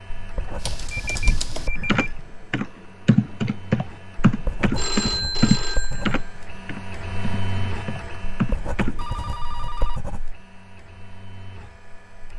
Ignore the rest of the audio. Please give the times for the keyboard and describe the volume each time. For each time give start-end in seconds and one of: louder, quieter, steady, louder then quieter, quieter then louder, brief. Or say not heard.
0.6-8.9 louder then quieter.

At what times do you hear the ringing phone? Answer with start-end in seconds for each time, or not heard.
0.5-2.1, 4.8-6.3, 8.9-10.0.